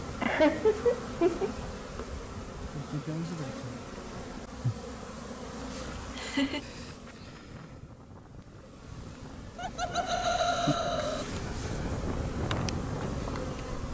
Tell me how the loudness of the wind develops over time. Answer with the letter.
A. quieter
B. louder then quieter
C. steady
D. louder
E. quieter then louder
D.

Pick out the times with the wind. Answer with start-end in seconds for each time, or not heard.
6.5-13.8.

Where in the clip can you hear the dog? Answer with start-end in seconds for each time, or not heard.
not heard.